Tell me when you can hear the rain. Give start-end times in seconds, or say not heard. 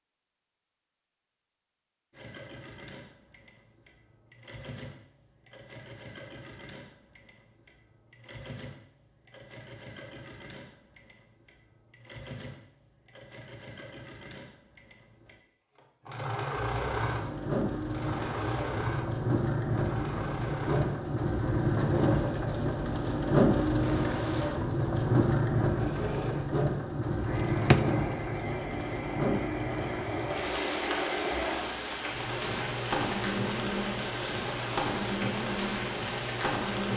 16.9-36.9.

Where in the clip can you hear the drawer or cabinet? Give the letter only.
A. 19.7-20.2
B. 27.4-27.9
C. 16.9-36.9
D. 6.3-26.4
B.